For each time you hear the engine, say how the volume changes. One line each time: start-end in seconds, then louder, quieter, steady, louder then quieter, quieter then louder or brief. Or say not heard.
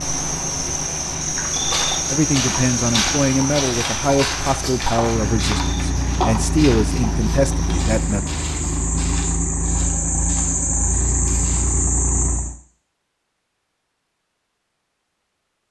0.0-12.6 louder.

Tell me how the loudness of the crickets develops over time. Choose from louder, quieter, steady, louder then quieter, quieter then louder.
quieter then louder.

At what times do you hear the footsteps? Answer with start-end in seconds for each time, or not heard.
1.4-11.9.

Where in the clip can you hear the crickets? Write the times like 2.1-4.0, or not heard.
0.0-12.6.